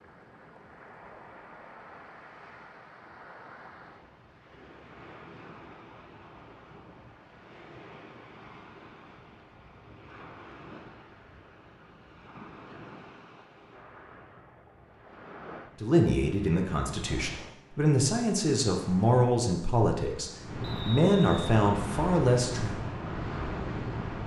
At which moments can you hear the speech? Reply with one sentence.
You can hear the speech from 15.8 to 22.8 s.